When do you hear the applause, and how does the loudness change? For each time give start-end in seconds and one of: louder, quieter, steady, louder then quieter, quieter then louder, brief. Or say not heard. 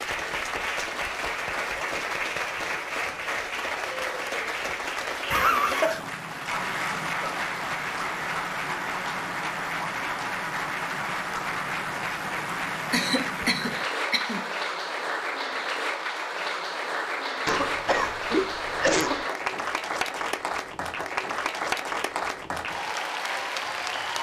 0.0-24.1 steady.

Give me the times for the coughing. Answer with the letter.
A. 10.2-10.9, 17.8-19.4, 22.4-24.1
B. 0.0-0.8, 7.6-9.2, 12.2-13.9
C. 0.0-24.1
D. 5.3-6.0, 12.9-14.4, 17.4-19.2
D.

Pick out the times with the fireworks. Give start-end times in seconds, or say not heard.
not heard.